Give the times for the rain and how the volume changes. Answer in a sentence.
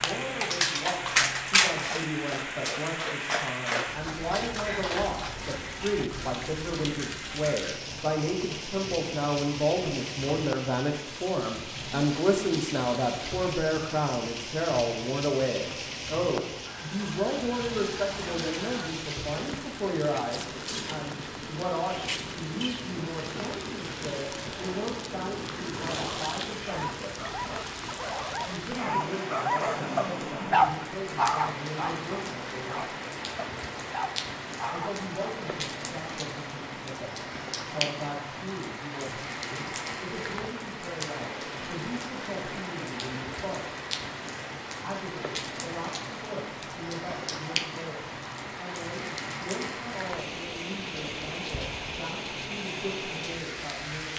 You can hear the rain from 0.0 to 54.1 s, at a steady volume.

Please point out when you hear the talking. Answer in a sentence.
The talking can be heard from 0.0 to 27.1 s, from 28.4 to 32.9 s, from 34.7 to 43.8 s and from 44.8 to 54.1 s.